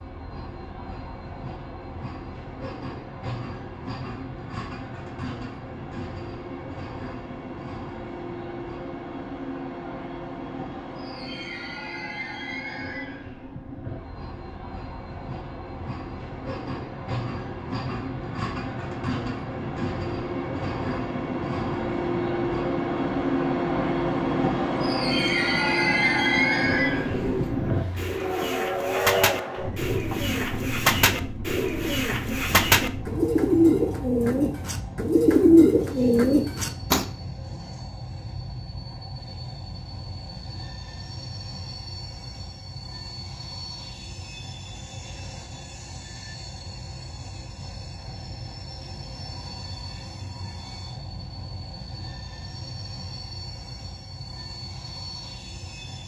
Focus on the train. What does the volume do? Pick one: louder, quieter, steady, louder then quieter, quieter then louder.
louder then quieter.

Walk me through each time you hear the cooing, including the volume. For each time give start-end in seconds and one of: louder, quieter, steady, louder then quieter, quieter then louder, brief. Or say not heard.
26.9-37.0 louder.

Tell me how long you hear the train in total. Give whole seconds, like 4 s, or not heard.
56 s.